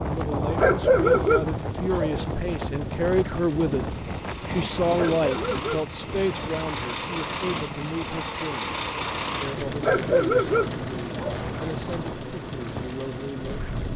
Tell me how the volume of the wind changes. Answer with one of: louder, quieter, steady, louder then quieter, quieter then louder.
quieter.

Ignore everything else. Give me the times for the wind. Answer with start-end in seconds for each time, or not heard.
0.0-13.9.